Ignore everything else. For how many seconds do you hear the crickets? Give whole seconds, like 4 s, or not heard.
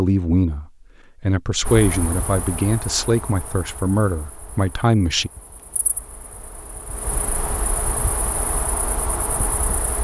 8 s.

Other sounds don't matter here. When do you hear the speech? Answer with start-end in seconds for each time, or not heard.
0.0-5.3.